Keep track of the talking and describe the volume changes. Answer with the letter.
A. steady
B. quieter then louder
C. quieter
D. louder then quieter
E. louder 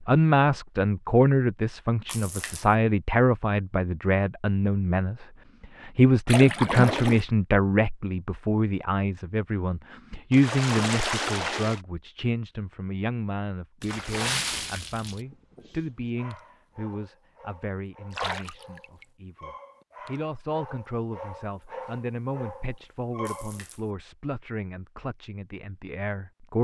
C.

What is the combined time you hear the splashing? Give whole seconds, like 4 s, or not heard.
6 s.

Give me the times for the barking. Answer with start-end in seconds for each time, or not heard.
15.2-23.6.